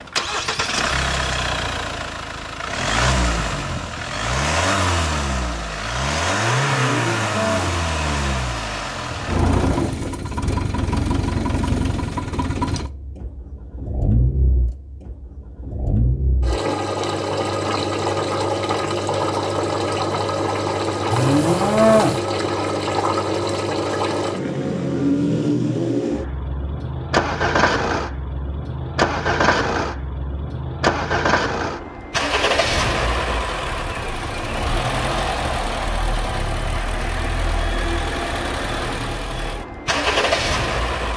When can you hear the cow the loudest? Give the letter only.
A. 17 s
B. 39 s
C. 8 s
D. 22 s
D.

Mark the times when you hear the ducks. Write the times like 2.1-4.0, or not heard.
not heard.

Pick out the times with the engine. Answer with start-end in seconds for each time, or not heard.
0.0-41.1.